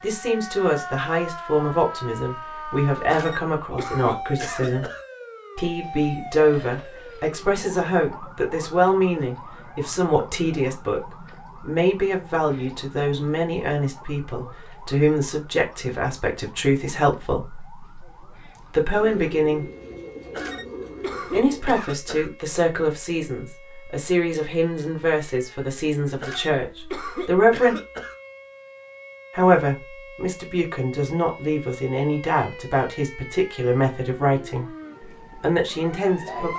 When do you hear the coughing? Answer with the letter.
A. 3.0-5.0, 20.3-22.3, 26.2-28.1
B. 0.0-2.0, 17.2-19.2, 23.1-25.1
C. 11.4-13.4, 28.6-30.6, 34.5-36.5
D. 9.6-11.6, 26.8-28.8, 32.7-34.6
A.